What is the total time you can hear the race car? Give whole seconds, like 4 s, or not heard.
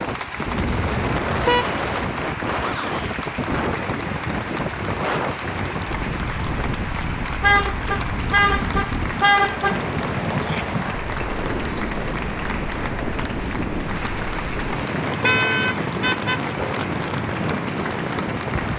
not heard.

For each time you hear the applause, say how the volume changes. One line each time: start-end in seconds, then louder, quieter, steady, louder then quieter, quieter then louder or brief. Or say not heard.
0.0-18.7 steady.